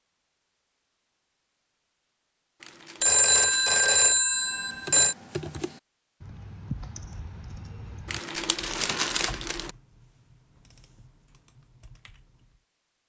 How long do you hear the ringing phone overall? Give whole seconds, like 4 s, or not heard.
2 s.